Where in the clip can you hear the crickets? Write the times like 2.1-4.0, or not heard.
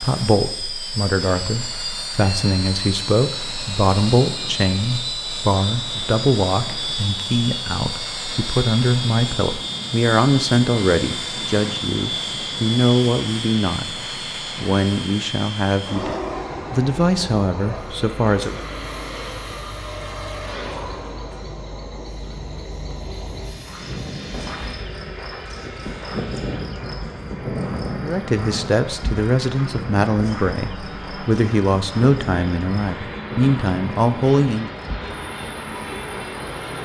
16.3-36.6.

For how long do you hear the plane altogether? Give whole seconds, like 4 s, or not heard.
37 s.